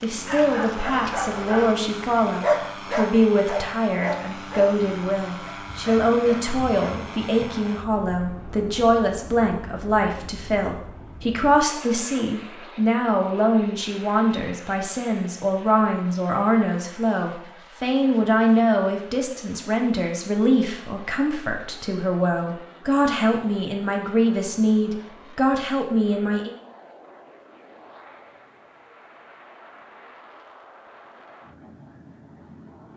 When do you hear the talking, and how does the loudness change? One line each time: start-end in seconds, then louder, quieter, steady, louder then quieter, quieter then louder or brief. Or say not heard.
0.0-26.6 steady.